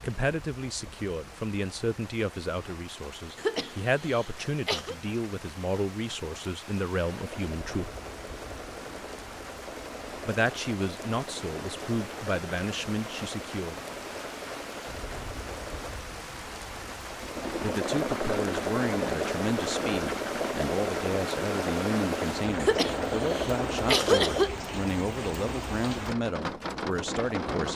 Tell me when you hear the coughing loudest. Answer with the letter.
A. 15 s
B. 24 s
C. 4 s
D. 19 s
B.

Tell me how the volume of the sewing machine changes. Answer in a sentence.
The loudness of the sewing machine goes up.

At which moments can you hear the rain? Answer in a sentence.
The rain can be heard from 0.0 to 27.7 s.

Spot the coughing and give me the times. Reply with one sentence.
You can hear the coughing from 3.4 to 5.0 s and from 22.6 to 24.6 s.